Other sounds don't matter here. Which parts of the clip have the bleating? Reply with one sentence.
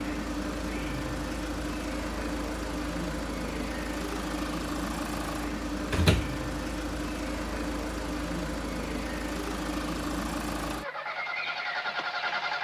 You can't hear the bleating here.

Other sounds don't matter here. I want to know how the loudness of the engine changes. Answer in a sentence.
The loudness of the engine stays about the same.